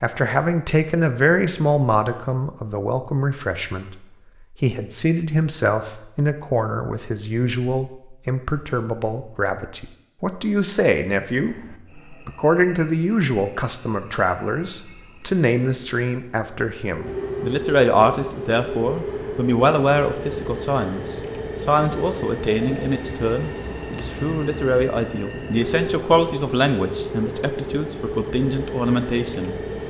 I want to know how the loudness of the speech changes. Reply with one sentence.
The volume of the speech stays about the same.